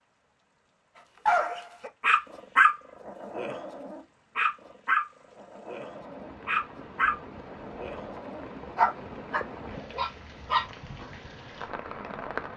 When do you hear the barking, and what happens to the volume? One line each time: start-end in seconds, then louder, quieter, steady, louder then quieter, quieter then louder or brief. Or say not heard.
1.2-10.7 quieter then louder.